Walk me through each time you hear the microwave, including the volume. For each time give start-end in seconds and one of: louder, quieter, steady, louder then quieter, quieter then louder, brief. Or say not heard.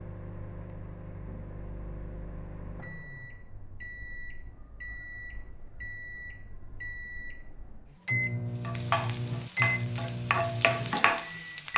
0.0-11.7 louder.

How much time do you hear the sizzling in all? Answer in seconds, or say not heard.
3 s.